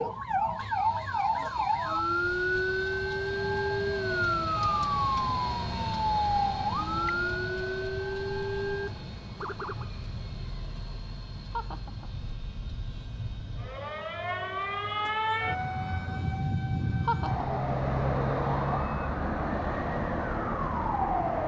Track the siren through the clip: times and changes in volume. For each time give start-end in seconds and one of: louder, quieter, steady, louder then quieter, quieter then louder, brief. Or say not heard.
0.0-21.4 quieter then louder.